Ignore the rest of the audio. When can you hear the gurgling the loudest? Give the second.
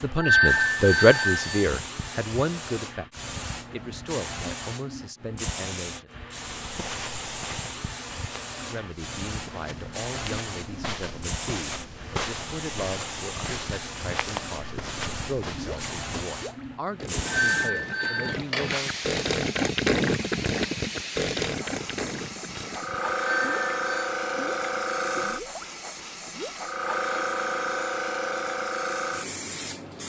20 s.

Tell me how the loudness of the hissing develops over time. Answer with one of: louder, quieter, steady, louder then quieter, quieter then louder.
louder.